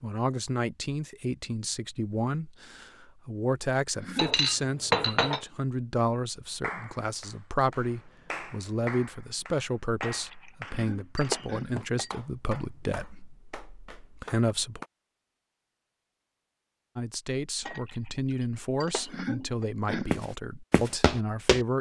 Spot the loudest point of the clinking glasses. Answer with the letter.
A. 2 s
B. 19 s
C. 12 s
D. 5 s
D.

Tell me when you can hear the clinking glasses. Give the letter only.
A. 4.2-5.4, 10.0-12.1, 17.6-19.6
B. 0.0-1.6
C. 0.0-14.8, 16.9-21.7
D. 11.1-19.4
A.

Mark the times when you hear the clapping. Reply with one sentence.
You can hear the clapping from 6.6 to 14.9 s.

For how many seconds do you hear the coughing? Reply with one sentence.
The coughing can be heard for 3 seconds in total.